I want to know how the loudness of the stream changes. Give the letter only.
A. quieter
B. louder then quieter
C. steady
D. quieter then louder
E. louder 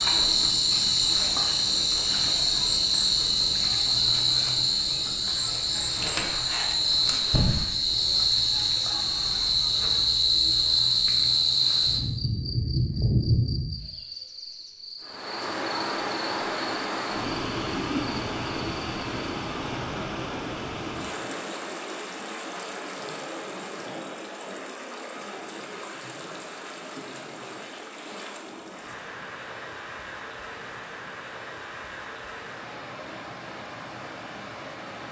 A.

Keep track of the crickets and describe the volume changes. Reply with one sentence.
The loudness of the crickets goes down.